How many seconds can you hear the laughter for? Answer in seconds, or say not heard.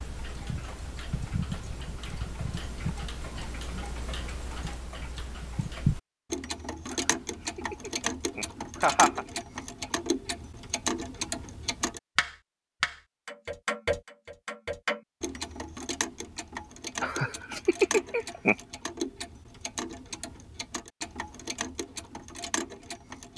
4 s.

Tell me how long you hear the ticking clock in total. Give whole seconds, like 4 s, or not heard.
23 s.